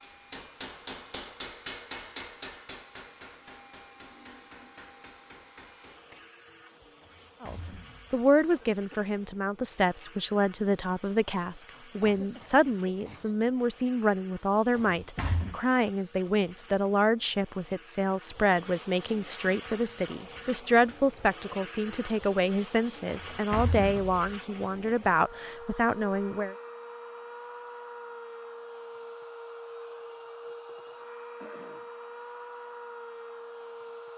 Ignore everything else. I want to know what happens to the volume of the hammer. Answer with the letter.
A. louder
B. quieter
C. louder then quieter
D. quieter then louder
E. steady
B.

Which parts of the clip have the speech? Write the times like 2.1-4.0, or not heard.
7.4-26.6.